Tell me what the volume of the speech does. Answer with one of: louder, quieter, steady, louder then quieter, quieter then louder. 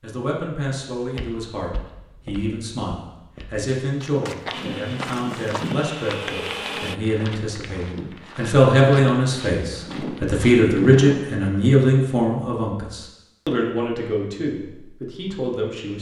louder then quieter.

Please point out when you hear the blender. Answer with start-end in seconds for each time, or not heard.
4.5-7.0.